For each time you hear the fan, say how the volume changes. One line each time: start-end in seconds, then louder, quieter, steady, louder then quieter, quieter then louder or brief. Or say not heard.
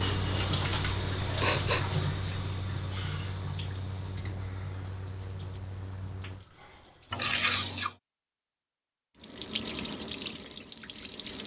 0.0-6.5 quieter.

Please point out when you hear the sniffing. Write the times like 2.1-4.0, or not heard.
1.2-1.9, 7.1-8.0.